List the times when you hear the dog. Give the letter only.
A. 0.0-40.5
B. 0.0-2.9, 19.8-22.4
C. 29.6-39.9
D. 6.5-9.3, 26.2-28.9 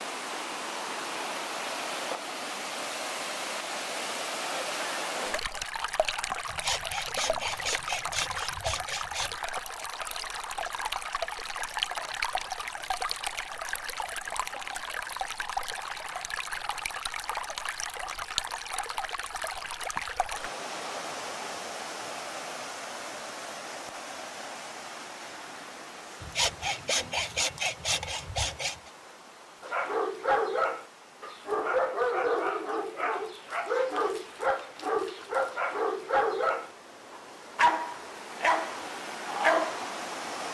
C.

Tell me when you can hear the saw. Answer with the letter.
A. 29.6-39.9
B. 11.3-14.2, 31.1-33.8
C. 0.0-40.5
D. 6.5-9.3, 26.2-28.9
D.